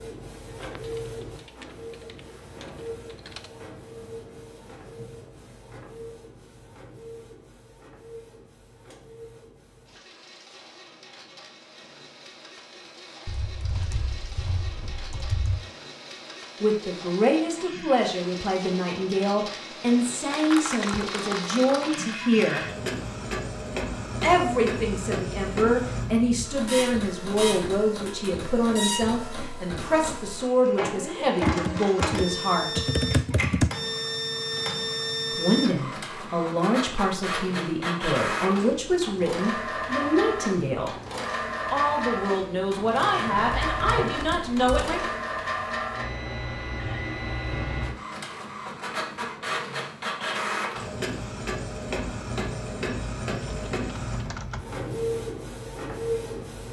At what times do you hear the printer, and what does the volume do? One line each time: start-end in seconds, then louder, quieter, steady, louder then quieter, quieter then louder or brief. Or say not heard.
0.0-56.6 louder.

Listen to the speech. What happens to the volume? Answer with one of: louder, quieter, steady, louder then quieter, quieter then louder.
steady.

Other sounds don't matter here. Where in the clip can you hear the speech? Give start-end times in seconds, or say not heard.
16.6-22.6, 24.2-32.9, 35.4-41.0, 41.7-45.0.